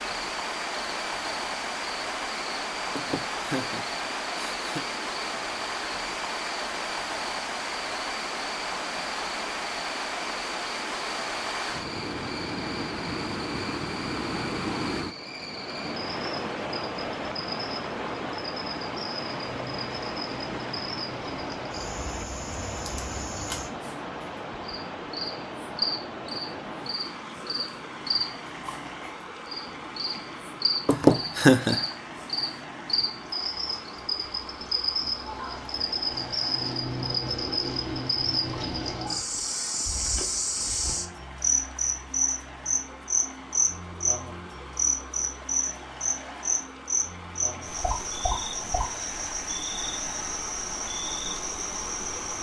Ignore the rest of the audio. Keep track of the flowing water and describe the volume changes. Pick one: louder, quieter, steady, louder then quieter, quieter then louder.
quieter.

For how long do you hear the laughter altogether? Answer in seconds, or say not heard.
3 s.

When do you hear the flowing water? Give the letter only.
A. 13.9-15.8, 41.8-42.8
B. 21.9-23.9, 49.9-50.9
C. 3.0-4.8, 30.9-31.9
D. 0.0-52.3
D.